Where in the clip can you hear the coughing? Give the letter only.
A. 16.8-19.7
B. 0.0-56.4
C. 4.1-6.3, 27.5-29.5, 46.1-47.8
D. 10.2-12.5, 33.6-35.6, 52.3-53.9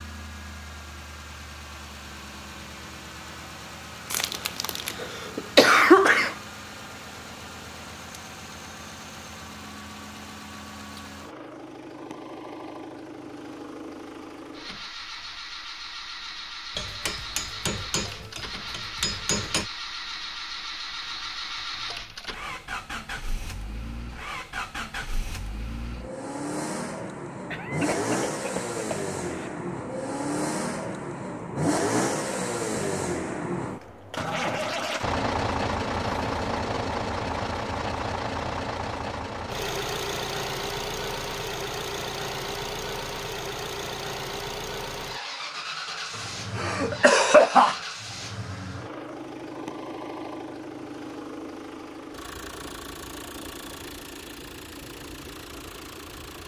C.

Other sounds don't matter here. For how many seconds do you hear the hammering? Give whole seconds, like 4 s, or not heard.
3 s.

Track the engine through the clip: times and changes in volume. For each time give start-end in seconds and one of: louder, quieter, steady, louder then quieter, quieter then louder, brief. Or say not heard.
0.0-56.4 louder then quieter.